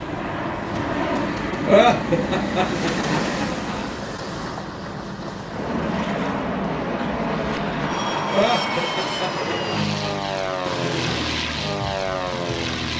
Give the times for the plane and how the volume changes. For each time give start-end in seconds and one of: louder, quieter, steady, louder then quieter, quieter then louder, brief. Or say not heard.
0.0-4.2 steady
5.4-12.9 steady.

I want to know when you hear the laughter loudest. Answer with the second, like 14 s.
2 s.